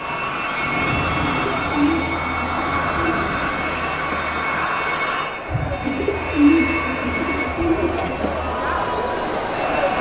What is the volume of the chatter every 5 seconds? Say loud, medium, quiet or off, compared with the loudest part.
medium, loud.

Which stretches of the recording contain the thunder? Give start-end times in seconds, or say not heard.
0.6-3.6.